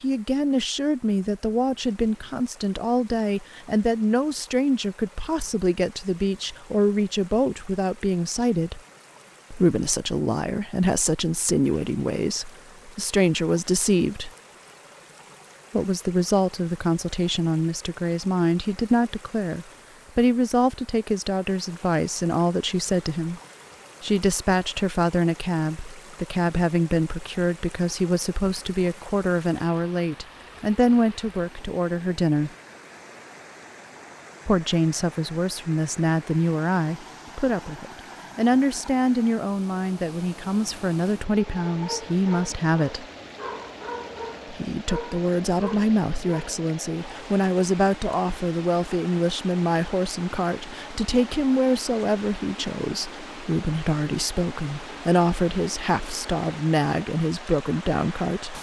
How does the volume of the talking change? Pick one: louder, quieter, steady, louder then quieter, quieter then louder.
steady.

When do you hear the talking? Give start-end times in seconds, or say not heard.
0.0-8.8, 9.5-14.3, 15.7-23.4, 24.0-32.5, 34.5-43.0, 44.5-58.5.